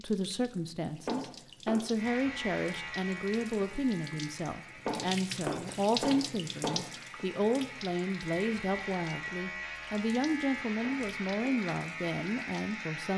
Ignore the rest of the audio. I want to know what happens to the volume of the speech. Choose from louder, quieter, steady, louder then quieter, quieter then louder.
steady.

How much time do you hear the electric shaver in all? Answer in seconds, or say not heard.
11 s.